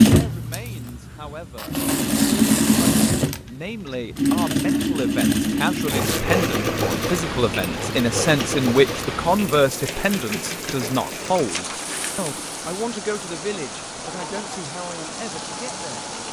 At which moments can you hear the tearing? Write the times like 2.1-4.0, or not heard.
1.6-3.3, 5.8-6.2, 11.5-12.3.